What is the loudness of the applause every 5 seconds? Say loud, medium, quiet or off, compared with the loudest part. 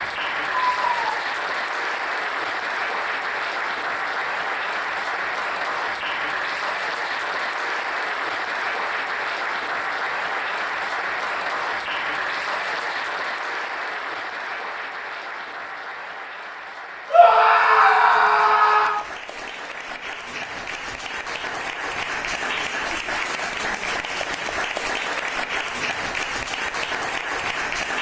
loud, loud, loud, medium, loud, loud.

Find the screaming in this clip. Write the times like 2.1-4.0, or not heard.
0.8-1.2, 17.1-18.9.